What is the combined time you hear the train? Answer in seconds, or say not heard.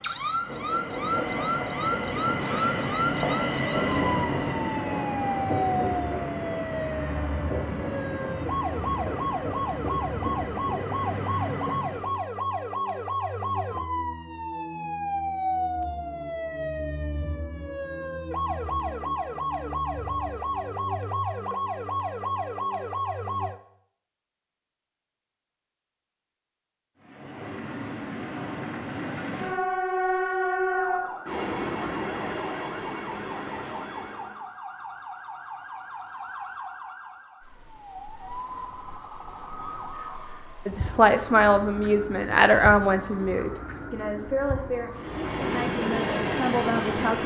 22 s.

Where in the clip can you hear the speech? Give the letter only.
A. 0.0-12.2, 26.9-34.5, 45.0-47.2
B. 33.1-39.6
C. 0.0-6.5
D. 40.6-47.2
D.